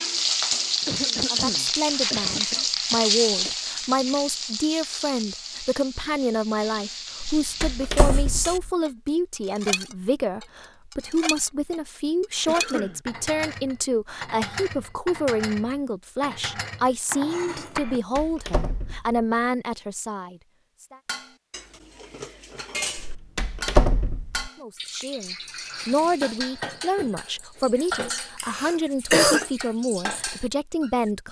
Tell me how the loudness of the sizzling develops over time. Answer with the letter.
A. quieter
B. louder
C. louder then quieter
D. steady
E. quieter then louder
A.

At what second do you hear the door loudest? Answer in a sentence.
The loudest moment of the door is at 24 seconds.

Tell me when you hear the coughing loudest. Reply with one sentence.
The loudest moment of the coughing is at 29 seconds.